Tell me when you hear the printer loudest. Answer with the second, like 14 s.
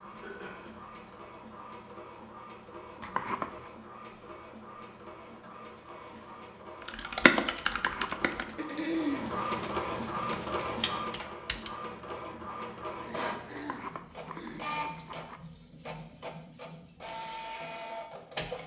10 s.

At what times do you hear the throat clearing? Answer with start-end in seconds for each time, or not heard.
0.0-0.7, 8.4-9.3, 13.0-14.7.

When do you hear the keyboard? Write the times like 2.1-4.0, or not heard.
6.8-8.4, 10.1-11.7.